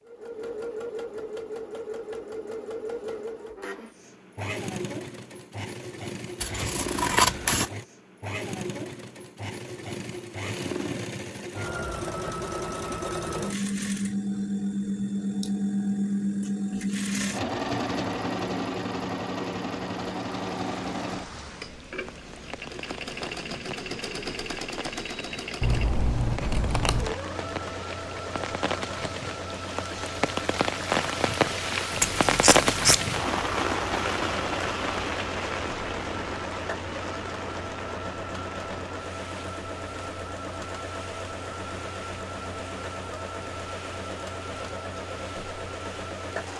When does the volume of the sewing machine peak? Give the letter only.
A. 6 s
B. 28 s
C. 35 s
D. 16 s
D.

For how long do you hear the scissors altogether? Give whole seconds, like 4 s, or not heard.
4 s.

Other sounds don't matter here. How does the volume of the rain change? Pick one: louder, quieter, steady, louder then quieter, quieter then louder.
louder then quieter.